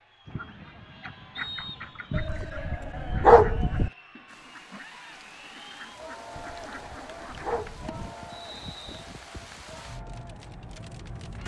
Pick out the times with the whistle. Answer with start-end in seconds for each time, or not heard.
1.4-2.2, 8.3-9.1.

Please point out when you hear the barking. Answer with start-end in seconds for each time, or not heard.
2.1-3.9, 6.3-8.1.